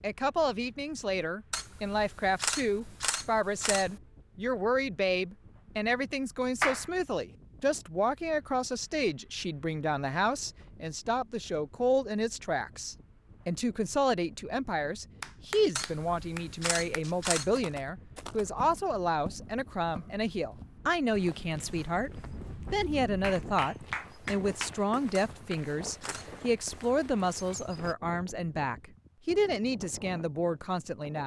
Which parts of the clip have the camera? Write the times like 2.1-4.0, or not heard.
1.5-4.0, 15.8-17.5, 25.1-26.4.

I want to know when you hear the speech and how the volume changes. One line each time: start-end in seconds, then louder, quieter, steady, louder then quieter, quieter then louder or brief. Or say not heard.
0.0-31.2 steady.